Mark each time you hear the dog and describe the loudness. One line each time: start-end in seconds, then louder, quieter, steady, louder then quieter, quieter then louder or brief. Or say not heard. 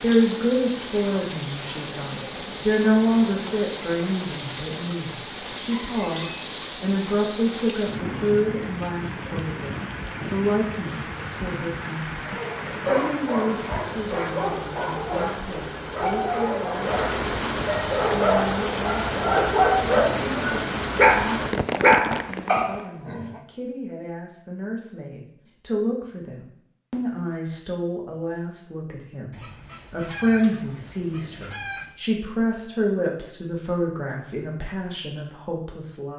12.2-23.4 louder.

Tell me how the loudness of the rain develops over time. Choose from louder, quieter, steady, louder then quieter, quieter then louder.
louder.